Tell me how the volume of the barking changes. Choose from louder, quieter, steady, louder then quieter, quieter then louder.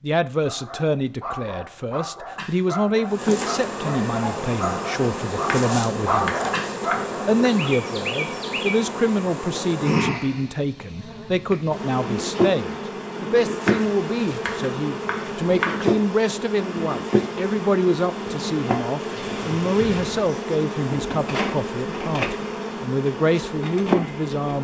louder.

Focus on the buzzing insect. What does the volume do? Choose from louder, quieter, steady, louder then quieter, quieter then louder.
steady.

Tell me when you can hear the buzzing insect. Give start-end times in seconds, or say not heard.
3.0-24.6.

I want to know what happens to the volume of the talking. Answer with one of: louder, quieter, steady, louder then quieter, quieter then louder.
steady.